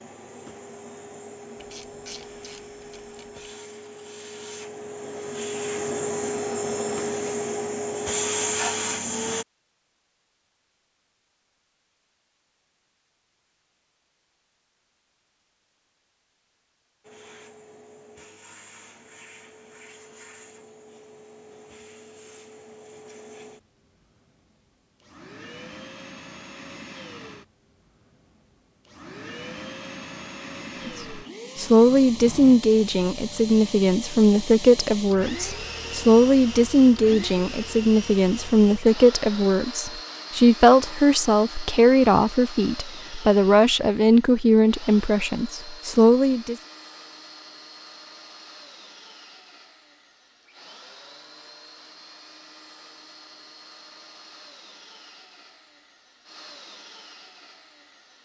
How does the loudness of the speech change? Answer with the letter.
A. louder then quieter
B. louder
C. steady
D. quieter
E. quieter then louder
C.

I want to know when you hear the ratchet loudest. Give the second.
2 s.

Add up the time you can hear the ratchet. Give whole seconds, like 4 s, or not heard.
2 s.